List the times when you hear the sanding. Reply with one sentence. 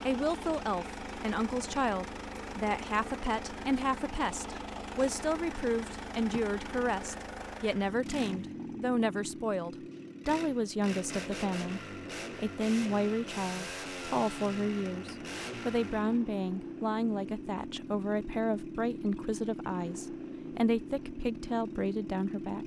You can't hear the sanding here.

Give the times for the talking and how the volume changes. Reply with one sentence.
You can hear the talking from 0.1 to 22.6 s, at a steady volume.